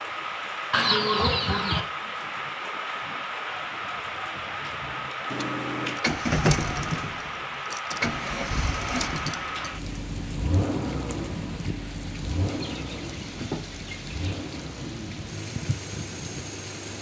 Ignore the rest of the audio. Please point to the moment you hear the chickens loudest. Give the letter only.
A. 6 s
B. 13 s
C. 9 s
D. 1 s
D.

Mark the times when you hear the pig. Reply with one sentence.
You can't hear the pig here.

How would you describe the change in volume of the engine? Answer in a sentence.
The volume of the engine goes down.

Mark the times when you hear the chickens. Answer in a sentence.
The chickens can be heard from 0.7 to 1.8 s and from 12.5 to 14.3 s.